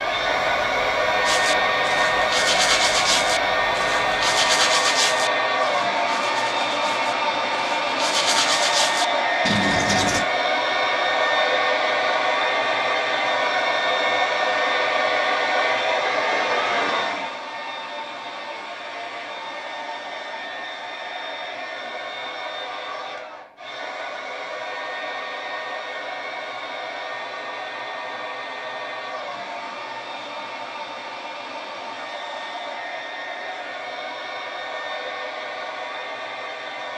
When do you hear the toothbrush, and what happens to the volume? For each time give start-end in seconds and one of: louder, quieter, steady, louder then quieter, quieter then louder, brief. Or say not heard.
1.2-10.2 quieter then louder.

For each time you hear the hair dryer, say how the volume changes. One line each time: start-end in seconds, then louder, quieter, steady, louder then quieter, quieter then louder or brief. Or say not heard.
0.0-36.9 quieter.